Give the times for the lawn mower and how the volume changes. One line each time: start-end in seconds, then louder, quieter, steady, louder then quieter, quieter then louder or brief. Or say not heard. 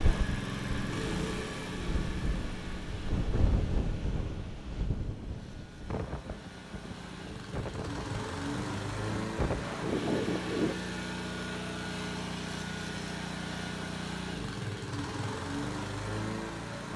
0.0-16.9 quieter then louder.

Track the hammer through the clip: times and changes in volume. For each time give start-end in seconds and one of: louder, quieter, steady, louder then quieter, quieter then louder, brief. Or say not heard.
not heard.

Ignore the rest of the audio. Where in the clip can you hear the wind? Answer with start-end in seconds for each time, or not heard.
0.0-10.8.